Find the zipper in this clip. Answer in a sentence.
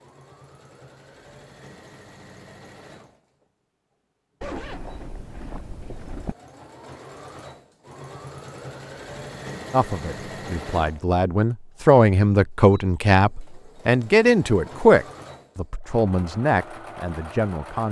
You can hear the zipper from 4.4 to 6.3 s.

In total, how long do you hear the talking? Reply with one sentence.
You can hear the talking for 8 seconds altogether.